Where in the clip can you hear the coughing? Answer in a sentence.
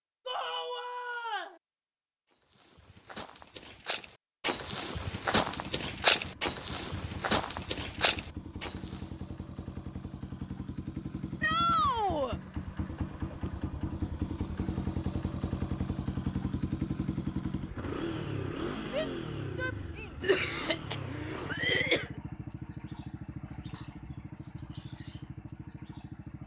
The coughing can be heard from 20.2 to 22.1 s.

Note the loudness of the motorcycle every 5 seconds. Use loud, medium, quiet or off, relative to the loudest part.
off, medium, loud, loud, medium, medium.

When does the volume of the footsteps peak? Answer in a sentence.
The volume of the footsteps peaks at 6 seconds.